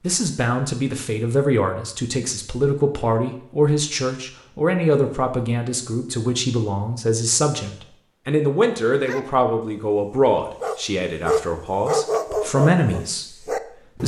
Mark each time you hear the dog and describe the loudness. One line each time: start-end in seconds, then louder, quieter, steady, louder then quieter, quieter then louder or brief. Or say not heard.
8.9-14.0 louder then quieter.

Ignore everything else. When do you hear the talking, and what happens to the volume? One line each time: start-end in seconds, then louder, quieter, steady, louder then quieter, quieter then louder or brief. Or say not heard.
0.0-14.0 steady.